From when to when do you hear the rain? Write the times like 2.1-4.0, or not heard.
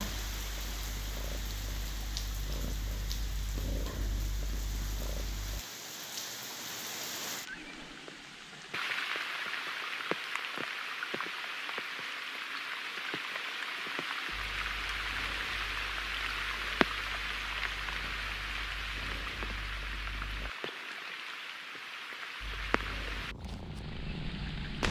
0.0-24.8.